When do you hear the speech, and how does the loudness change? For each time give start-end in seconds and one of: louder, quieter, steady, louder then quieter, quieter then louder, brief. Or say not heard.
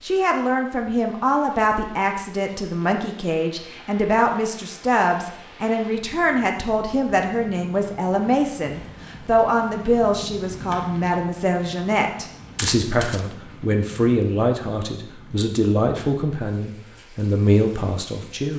0.0-18.5 steady.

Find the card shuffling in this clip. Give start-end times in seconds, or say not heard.
12.6-13.3.